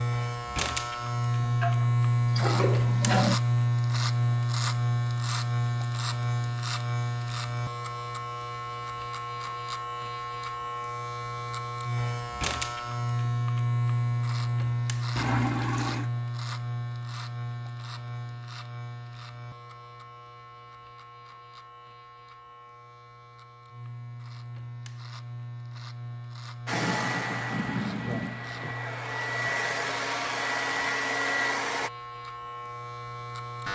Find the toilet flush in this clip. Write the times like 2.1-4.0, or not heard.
1.4-3.4, 15.2-16.1, 26.7-28.8.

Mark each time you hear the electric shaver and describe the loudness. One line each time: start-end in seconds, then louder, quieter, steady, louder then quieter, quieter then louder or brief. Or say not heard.
0.0-33.7 quieter.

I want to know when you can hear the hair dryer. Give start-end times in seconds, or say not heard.
26.6-31.9.